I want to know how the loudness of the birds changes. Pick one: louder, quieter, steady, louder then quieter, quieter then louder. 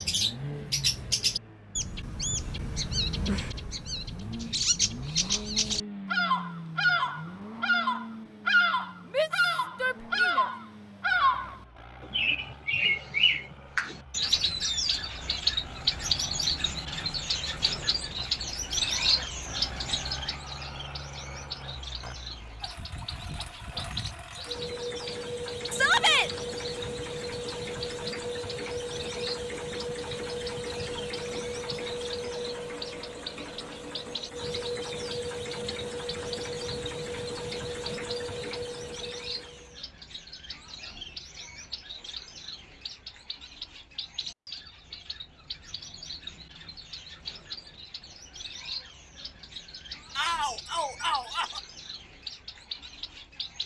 quieter.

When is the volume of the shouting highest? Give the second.
26 s.